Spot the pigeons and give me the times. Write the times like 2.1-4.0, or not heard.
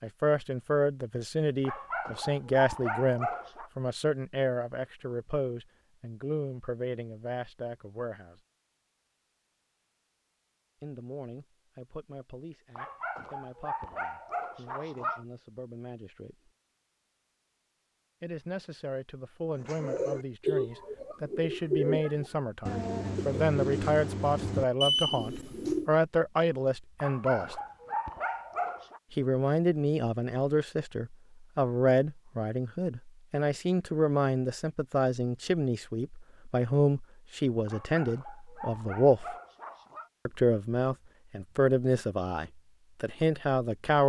19.6-25.9.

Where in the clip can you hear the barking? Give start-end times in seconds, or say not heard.
1.6-3.7, 12.8-15.2, 27.0-29.0, 37.6-40.1.